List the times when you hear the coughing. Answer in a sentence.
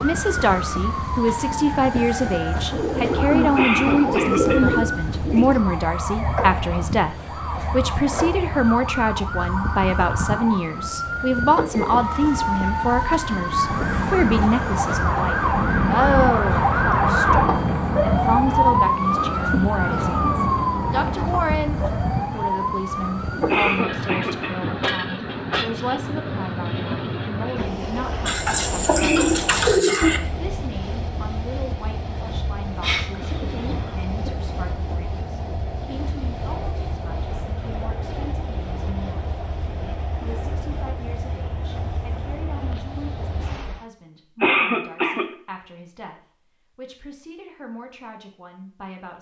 You can hear the coughing from 3.5 to 4.8 s, from 23.4 to 24.7 s and from 44.4 to 45.2 s.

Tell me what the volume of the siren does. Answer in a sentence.
The volume of the siren goes up.